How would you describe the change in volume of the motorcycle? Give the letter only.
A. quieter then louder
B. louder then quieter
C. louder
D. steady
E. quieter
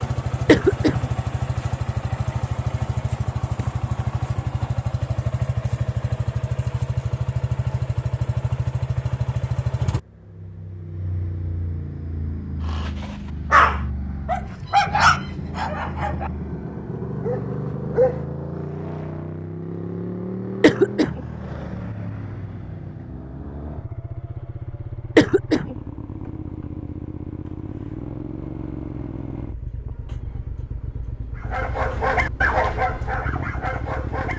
E.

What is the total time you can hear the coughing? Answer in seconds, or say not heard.
2 s.